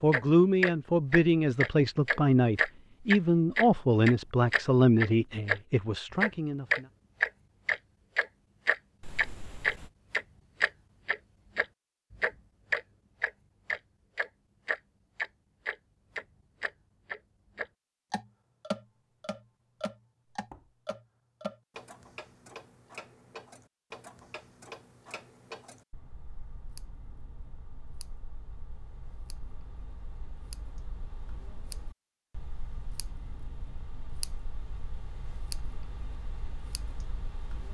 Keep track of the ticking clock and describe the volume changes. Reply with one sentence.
The loudness of the ticking clock goes down.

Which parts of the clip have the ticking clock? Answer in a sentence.
The ticking clock can be heard from 0.1 to 37.6 s.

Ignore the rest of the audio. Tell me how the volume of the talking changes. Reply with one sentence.
The loudness of the talking goes down.